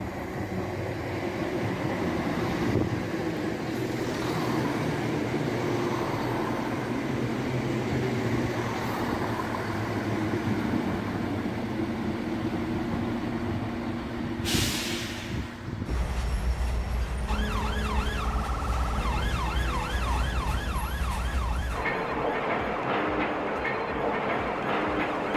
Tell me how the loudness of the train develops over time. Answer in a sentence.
The loudness of the train goes down, then up.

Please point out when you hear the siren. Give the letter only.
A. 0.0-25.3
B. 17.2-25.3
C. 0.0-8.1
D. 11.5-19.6
B.